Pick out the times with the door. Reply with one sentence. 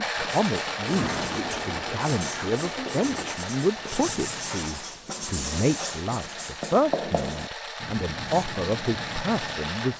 You can hear the door from 0.8 to 3.4 s.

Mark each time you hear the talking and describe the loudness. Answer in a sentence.
You can hear the talking from 0.0 to 9.9 s, at a steady volume.